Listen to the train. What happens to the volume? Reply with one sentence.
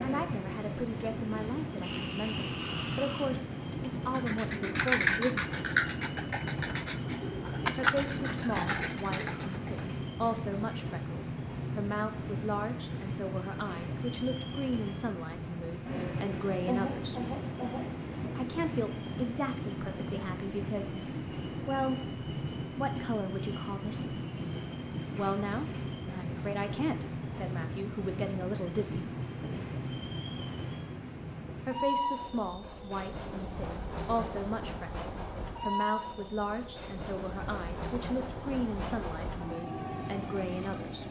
The volume of the train stays about the same.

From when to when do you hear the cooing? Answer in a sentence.
You can hear the cooing from 3.6 to 9.8 s.